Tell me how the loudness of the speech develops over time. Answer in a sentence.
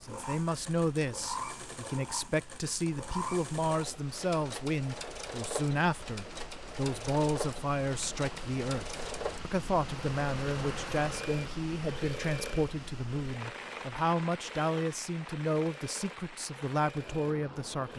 The volume of the speech stays about the same.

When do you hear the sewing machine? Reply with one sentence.
The sewing machine can be heard from 0.0 to 17.9 s.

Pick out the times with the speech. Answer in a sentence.
You can hear the speech from 0.0 to 17.9 s.